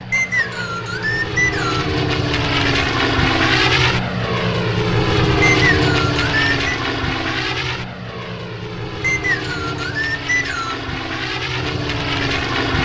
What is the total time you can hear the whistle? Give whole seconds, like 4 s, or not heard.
5 s.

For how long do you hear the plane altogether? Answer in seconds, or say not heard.
13 s.